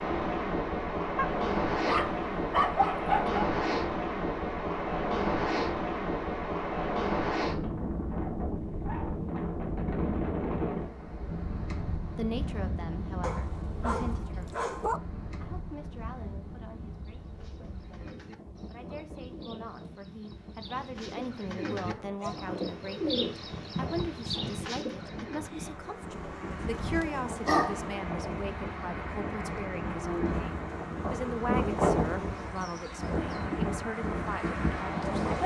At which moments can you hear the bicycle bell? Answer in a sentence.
The bicycle bell can't be heard in this clip.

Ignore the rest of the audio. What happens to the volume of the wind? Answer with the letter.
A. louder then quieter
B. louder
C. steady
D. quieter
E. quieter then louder
E.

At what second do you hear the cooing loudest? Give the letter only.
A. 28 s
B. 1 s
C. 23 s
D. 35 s
C.